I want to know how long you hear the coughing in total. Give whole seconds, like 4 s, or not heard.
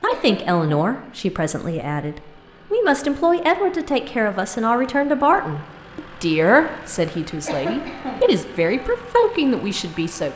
2 s.